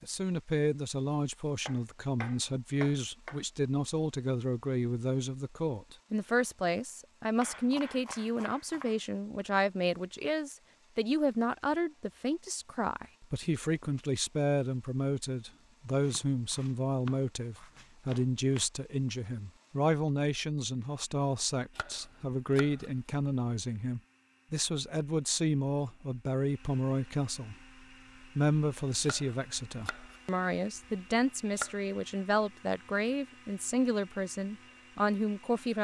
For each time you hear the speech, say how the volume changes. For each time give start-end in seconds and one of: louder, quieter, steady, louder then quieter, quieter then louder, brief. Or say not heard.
0.0-27.6 steady
28.2-35.7 steady.